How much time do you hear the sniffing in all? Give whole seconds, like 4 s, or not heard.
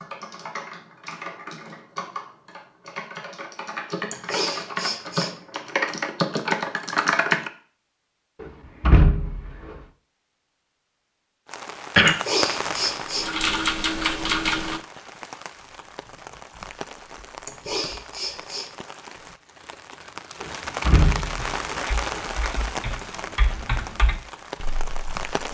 4 s.